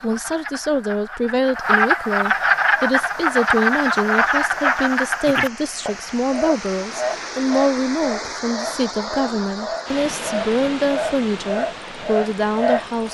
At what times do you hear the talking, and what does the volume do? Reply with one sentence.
You can hear the talking from 0.0 to 13.0 s, at a steady volume.